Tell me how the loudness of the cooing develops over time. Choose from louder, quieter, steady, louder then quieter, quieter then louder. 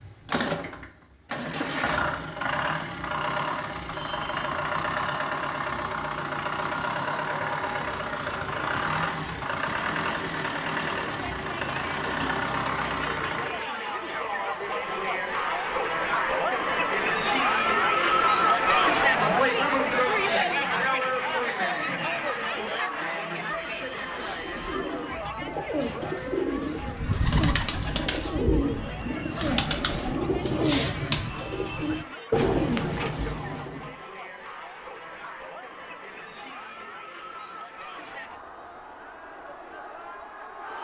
louder.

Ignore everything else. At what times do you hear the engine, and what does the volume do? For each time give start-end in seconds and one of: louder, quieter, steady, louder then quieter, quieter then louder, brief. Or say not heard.
0.0-13.7 steady.